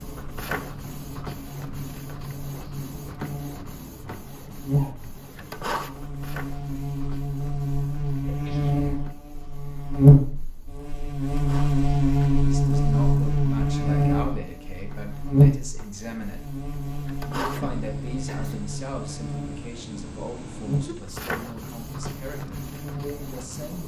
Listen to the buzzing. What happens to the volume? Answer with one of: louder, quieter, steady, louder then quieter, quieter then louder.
louder then quieter.